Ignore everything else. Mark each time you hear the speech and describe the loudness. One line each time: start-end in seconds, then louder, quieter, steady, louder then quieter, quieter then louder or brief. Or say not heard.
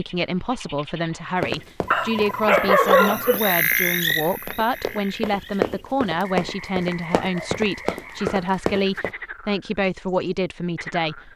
0.0-11.3 steady.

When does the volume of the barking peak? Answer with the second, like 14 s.
3 s.